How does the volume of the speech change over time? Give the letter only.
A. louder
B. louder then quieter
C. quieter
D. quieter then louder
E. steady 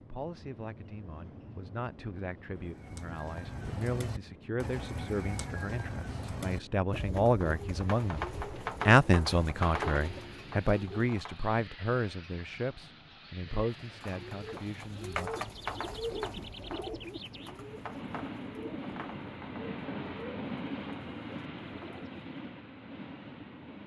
B.